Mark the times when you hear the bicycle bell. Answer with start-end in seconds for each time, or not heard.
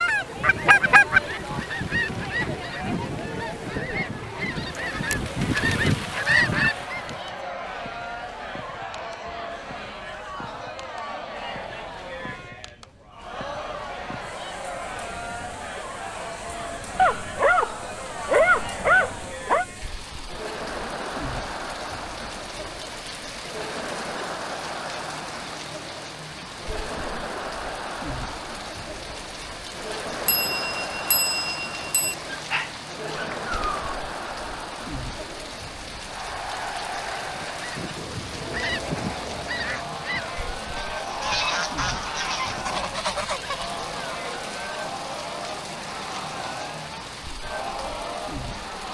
30.2-32.1.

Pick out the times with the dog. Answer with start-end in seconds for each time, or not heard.
16.9-19.6, 32.3-33.9.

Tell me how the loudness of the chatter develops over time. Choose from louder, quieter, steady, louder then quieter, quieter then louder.
steady.